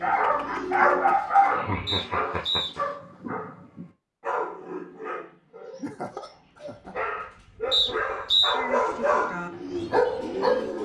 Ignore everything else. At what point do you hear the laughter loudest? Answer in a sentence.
The loudest moment of the laughter is at 2 seconds.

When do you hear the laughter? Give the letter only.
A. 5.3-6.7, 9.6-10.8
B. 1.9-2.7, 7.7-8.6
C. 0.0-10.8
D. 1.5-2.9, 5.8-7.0
D.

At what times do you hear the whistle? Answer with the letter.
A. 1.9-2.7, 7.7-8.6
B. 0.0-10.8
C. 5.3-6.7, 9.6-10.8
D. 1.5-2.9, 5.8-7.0
A.